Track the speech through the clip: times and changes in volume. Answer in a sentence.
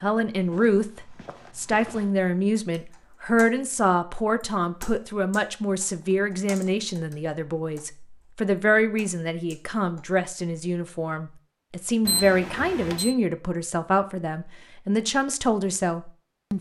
The speech can be heard from 0.0 to 16.5 s, at a steady volume.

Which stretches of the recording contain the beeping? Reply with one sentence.
You can hear the beeping from 12.1 to 13.2 s.